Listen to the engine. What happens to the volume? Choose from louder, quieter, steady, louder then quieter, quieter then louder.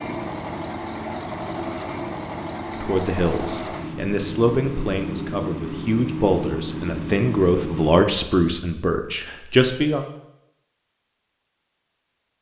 steady.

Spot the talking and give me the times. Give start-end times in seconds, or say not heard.
2.8-10.1.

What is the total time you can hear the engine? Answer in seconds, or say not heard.
8 s.